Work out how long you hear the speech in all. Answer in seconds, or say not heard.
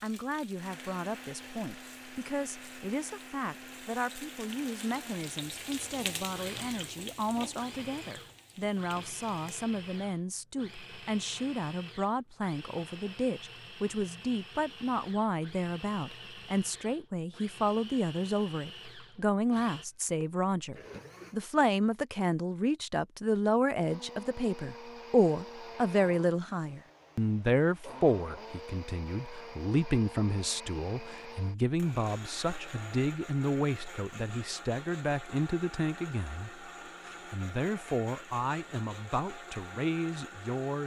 41 s.